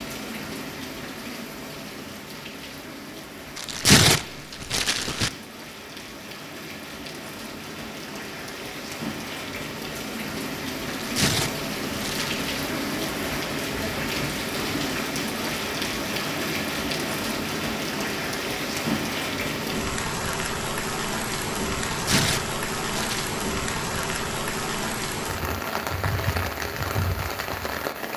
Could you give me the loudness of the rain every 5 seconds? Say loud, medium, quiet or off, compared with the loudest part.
medium, medium, loud, loud, loud, loud.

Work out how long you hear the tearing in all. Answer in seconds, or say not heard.
5 s.